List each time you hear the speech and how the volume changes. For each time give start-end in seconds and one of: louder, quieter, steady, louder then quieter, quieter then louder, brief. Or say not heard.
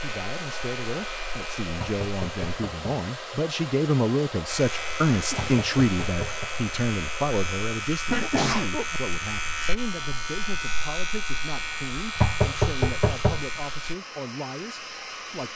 0.0-15.5 louder then quieter.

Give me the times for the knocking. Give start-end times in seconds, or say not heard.
1.8-2.9, 5.3-6.5, 12.2-13.4.